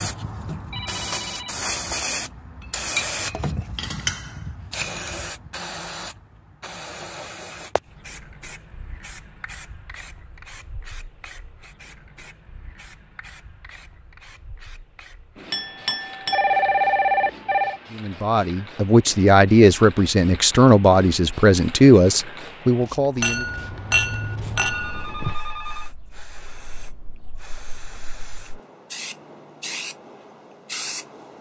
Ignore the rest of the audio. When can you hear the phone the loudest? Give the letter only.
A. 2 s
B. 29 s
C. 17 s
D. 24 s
C.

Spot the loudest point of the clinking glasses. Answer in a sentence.
The volume of the clinking glasses peaks at 24 seconds.